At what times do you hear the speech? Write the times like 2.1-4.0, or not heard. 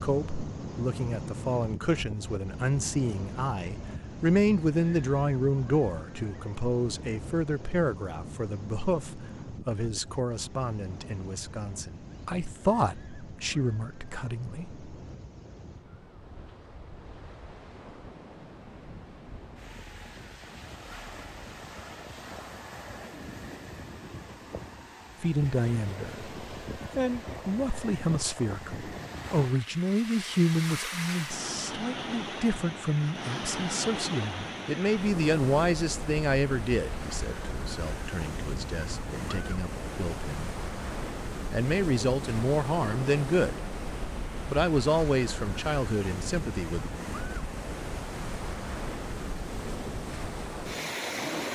0.0-14.8, 25.2-40.5, 41.5-43.5, 44.5-46.9.